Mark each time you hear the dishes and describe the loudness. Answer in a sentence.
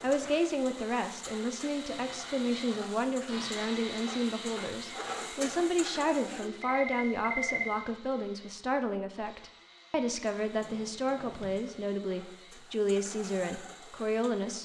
The dishes can't be heard in this clip.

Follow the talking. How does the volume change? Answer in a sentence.
The loudness of the talking stays about the same.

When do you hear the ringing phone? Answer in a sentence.
You can hear the ringing phone from 6.4 to 7.8 s.